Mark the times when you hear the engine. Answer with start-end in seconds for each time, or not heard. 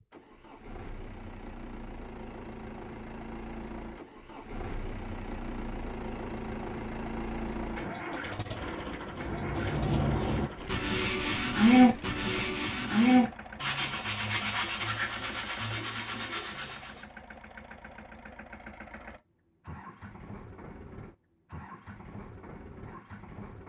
0.0-23.6.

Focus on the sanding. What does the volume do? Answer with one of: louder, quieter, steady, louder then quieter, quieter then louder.
louder then quieter.